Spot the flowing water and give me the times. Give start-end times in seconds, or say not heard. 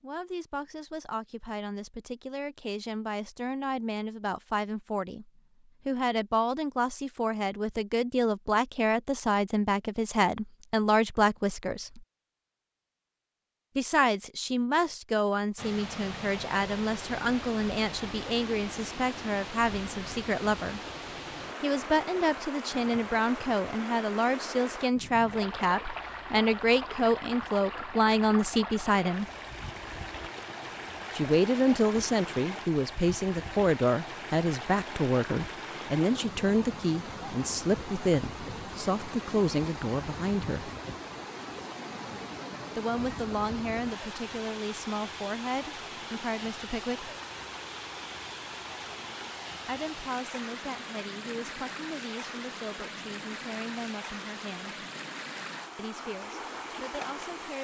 15.6-57.6.